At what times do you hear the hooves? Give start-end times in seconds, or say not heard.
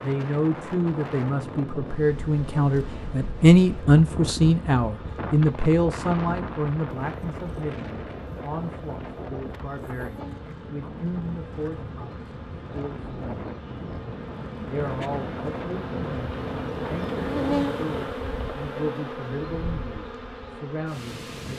not heard.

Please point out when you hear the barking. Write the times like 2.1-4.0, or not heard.
not heard.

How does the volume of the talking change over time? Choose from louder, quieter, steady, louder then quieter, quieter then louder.
quieter.